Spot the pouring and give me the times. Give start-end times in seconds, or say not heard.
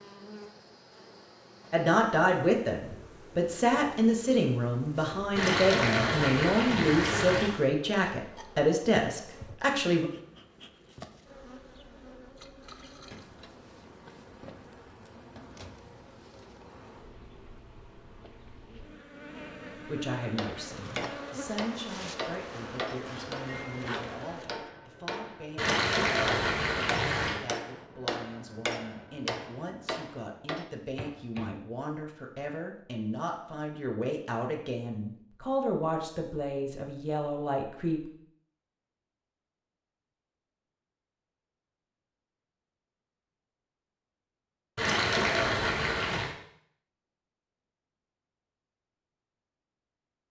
5.3-7.6, 25.6-27.4, 44.8-46.4.